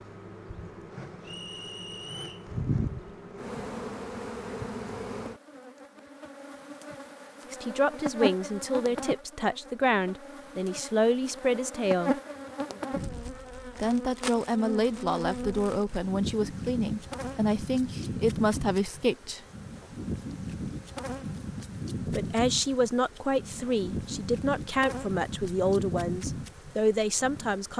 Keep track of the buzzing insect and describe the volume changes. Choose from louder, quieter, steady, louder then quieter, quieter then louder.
steady.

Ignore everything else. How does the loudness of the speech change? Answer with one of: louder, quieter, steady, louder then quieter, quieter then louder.
steady.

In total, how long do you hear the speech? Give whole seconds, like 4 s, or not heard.
16 s.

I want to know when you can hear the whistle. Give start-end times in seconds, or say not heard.
1.2-2.5.